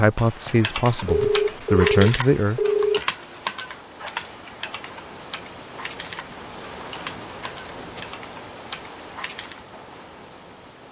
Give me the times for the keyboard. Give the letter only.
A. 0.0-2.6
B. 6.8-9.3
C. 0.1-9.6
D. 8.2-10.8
C.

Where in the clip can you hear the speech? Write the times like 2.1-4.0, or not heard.
0.0-2.6.